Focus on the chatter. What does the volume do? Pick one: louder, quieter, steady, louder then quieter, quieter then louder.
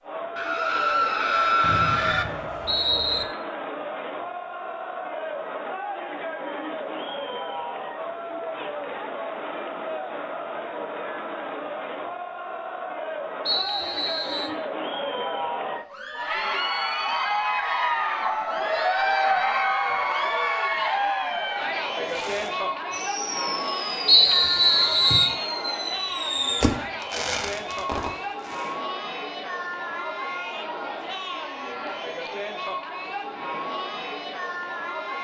louder then quieter.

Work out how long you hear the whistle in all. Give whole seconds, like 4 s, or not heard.
4 s.